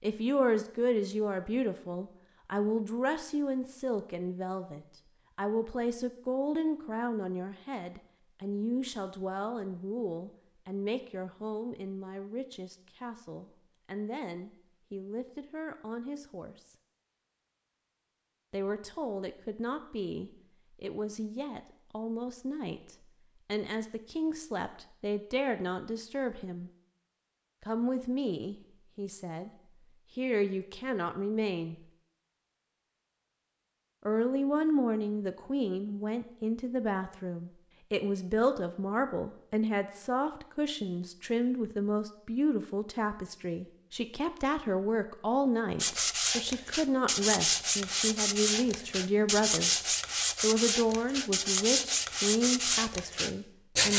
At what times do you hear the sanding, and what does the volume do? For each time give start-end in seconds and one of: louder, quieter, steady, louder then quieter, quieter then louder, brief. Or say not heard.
45.8-53.9 steady.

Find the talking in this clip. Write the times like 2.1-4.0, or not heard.
0.0-16.8, 18.5-26.7, 27.6-29.5, 30.1-31.8, 34.0-53.9.